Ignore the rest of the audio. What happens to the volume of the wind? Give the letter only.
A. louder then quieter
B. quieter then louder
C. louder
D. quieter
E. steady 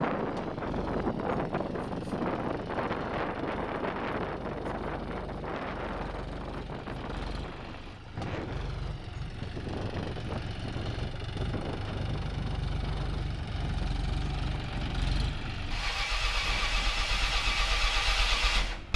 D.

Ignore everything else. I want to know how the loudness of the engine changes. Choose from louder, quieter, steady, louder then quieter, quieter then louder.
louder.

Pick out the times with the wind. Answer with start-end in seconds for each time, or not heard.
0.0-18.9.